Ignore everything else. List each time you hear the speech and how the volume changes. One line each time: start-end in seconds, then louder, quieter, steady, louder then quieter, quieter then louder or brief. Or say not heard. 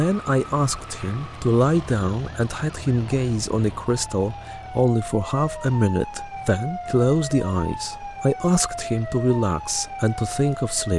0.0-10.9 steady.